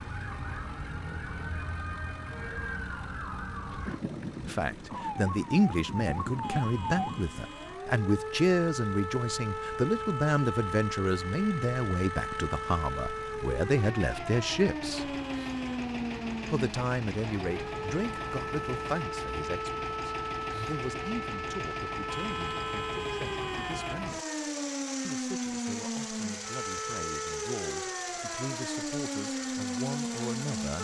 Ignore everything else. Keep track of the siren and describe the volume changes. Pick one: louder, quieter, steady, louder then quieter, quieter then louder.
steady.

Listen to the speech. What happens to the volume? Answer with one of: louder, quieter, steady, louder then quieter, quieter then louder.
quieter.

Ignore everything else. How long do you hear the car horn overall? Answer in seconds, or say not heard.
4 s.